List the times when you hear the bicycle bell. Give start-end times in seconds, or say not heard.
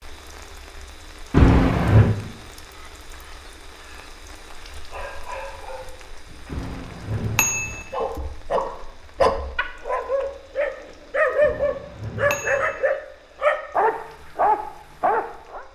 1.3-2.1, 6.5-7.8, 11.4-12.8.